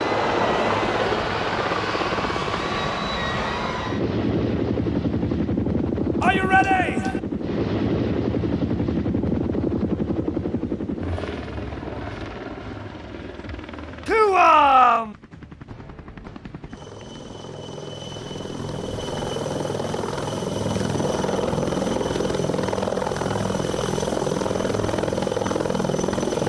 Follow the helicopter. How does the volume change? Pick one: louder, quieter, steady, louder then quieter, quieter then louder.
quieter then louder.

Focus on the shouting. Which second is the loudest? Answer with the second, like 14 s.
15 s.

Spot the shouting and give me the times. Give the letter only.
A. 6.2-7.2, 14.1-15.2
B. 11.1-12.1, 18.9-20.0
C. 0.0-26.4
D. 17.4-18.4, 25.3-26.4
A.